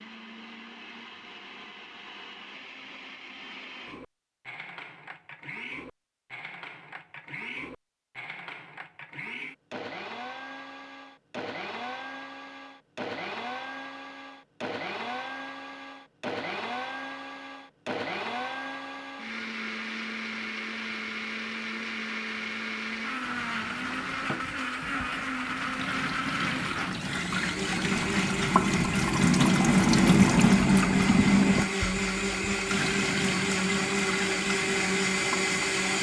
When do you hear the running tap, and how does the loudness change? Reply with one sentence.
The running tap can be heard from 23.2 to 35.9 s, getting louder then quieter.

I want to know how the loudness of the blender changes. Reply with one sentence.
The volume of the blender goes up.